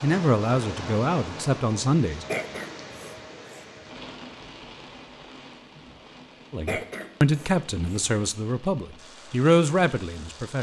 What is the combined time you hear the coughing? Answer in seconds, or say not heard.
3 s.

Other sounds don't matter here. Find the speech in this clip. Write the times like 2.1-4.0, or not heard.
0.0-2.2, 6.5-10.5.